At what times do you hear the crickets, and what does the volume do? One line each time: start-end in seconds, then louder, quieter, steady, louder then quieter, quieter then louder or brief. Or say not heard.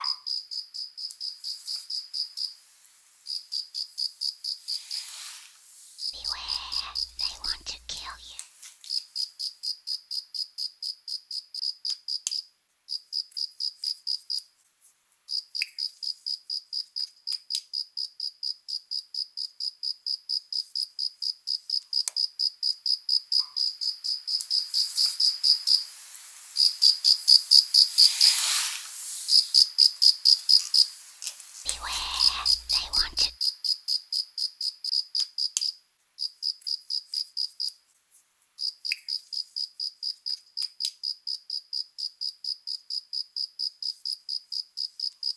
0.0-45.3 louder then quieter.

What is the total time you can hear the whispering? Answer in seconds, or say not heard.
4 s.